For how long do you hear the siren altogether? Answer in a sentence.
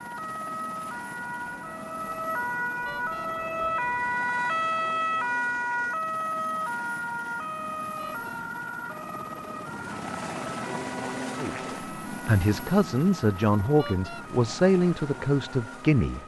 The siren can be heard for 16 seconds in total.